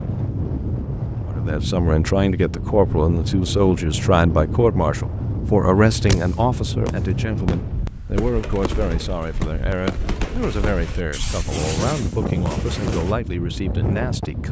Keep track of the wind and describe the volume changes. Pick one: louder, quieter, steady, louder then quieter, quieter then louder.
quieter then louder.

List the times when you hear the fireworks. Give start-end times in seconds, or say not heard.
6.0-13.2.